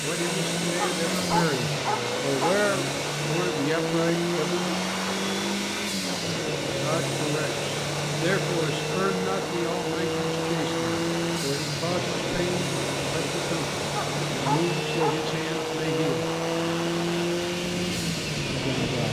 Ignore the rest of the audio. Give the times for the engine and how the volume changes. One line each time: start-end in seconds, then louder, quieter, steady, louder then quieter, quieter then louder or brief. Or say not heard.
0.0-19.0 steady.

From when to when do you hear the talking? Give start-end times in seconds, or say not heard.
0.0-4.7, 6.8-16.2, 18.6-19.0.